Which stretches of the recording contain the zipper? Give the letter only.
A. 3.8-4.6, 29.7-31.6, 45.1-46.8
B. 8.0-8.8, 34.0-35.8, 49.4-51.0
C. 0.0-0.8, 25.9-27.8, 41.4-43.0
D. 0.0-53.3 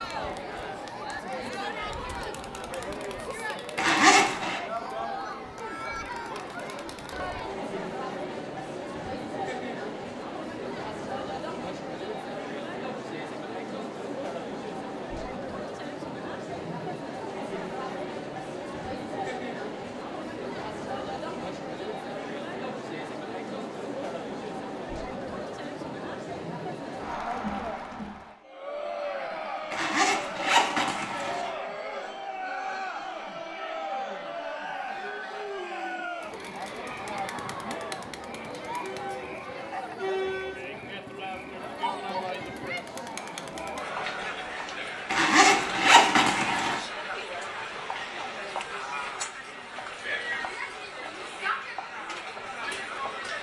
A.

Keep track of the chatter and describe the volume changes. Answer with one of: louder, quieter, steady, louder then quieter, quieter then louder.
steady.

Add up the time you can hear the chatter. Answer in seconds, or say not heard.
53 s.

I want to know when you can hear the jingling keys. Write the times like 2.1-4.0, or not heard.
not heard.